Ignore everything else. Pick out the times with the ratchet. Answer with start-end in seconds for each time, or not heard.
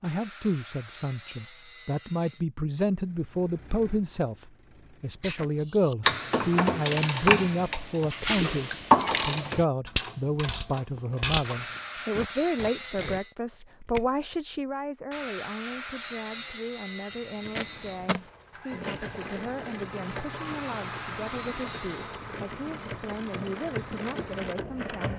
5.2-11.7, 18.7-25.1.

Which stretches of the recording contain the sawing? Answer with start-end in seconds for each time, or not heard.
0.0-2.5, 6.0-7.7, 11.4-13.3, 15.1-18.0, 20.4-22.2.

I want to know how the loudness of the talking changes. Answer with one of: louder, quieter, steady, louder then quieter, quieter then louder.
quieter.